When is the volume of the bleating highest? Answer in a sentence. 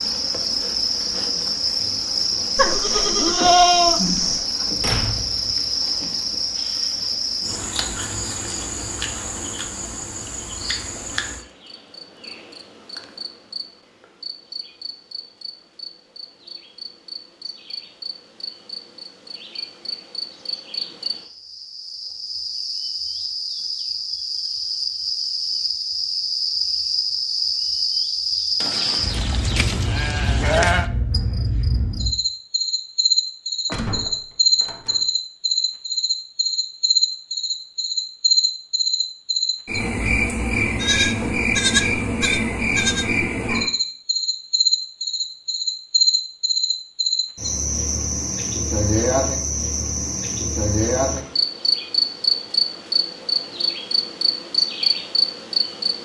The loudest moment of the bleating is at 4 seconds.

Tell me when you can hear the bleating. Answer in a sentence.
You can hear the bleating from 2.5 to 4.5 s, from 28.6 to 30.9 s and from 40.6 to 43.2 s.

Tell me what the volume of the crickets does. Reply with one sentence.
The loudness of the crickets goes down, then up.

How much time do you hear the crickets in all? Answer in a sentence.
The crickets can be heard for 56 seconds in total.